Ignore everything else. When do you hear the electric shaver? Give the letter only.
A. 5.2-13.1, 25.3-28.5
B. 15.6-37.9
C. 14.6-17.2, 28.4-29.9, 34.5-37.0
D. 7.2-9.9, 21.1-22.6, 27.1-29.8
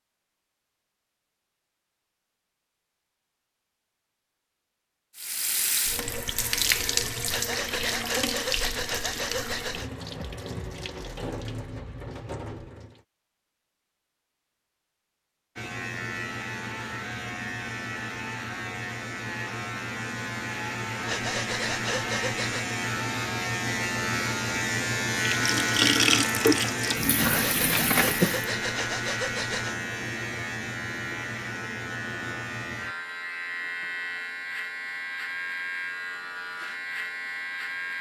B.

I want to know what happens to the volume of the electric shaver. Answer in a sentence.
The loudness of the electric shaver goes up, then down.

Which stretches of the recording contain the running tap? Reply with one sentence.
You can hear the running tap from 5.2 to 13.1 s and from 25.3 to 28.5 s.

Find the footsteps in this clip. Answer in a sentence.
The footsteps can't be heard in this clip.